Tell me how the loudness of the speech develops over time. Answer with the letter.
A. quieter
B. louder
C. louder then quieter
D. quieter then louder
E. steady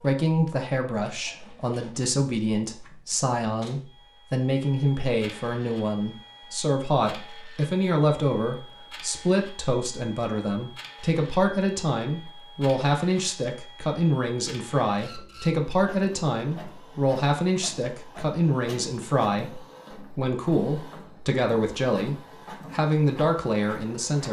E.